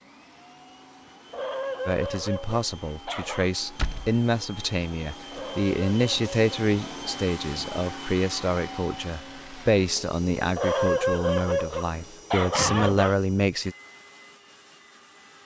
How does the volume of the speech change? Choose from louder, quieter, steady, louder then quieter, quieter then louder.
steady.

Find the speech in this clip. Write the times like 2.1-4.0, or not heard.
1.9-13.8.